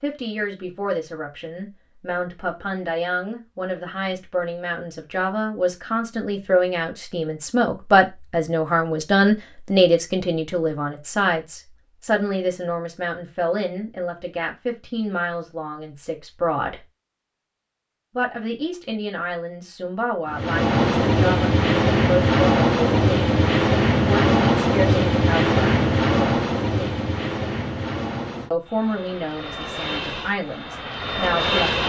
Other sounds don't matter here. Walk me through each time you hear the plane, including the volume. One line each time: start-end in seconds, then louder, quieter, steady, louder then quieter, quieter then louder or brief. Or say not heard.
20.3-31.8 quieter.